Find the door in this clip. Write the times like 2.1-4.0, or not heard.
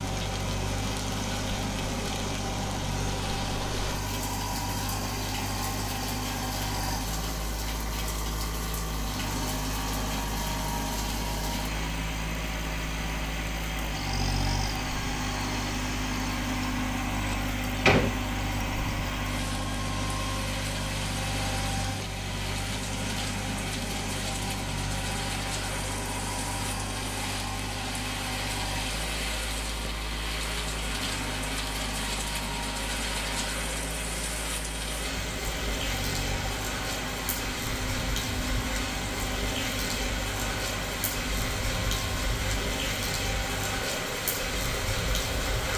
17.3-18.1.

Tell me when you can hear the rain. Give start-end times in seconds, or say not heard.
0.0-45.7.